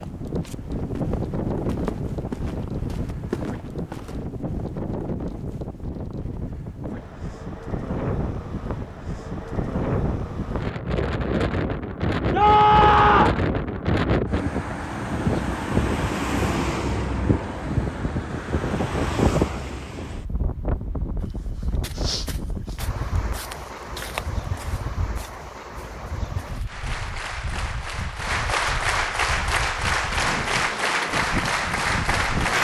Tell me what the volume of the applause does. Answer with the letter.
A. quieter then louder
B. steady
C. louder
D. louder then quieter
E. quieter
C.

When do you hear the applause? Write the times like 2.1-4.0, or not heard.
26.6-32.5.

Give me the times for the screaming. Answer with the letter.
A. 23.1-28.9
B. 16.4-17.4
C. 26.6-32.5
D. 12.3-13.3
D.